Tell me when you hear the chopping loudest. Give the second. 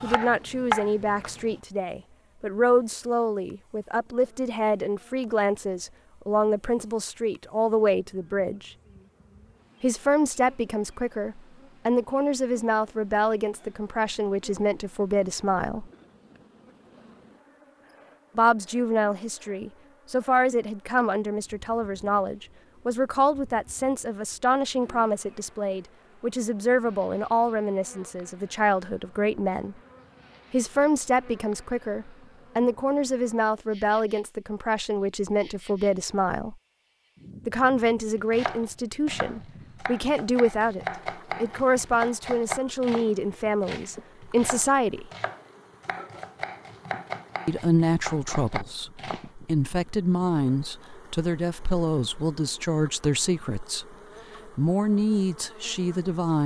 1 s.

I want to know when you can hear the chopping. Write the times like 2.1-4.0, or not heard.
0.0-1.6, 38.1-49.3.